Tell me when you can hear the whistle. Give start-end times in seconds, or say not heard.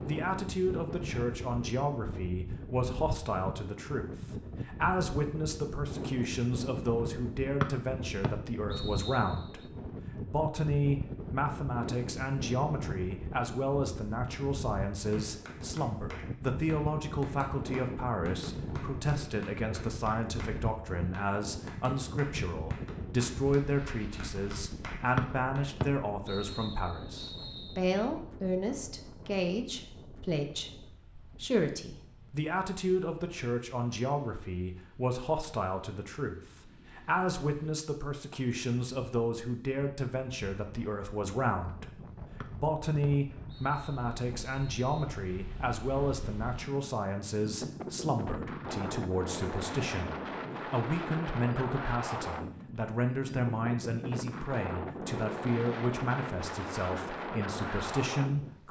7.6-9.4, 25.1-27.8, 42.4-45.1.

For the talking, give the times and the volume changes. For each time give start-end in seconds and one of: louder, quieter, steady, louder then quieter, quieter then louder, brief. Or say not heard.
0.1-58.6 steady.